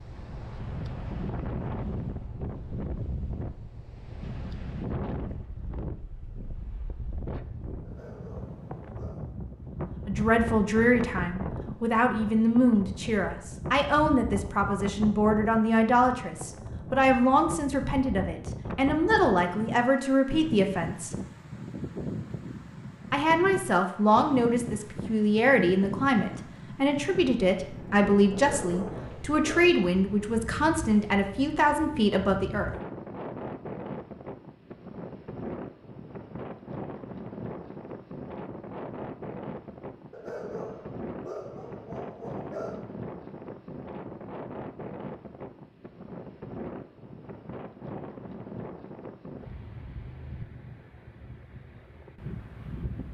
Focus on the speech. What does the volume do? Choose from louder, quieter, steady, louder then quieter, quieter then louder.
steady.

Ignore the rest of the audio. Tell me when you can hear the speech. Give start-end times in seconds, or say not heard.
10.1-21.1, 23.1-32.7.